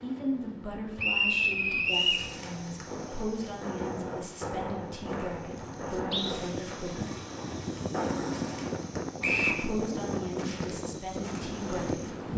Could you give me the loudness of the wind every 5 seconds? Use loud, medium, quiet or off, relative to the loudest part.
quiet, loud, loud.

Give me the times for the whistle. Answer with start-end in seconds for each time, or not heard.
0.9-2.2, 4.4-6.3, 9.2-9.7.